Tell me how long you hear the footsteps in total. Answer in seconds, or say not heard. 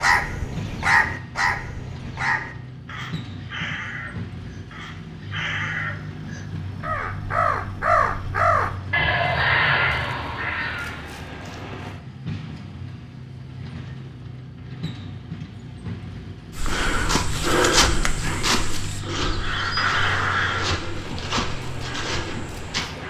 6 s.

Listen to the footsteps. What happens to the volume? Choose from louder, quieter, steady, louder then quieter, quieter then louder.
quieter.